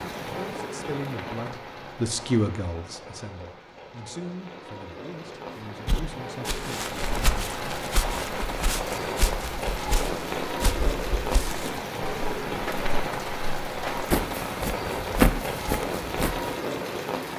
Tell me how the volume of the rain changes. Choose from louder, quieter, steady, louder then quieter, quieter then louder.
louder.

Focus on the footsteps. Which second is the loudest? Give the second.
15 s.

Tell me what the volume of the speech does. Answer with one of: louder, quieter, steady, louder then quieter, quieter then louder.
louder then quieter.